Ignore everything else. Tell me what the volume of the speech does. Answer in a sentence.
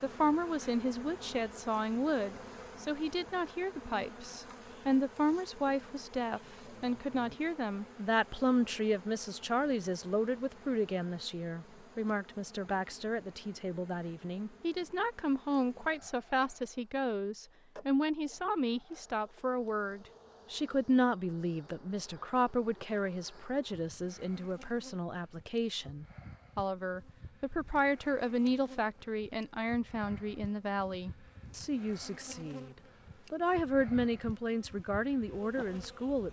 The volume of the speech stays about the same.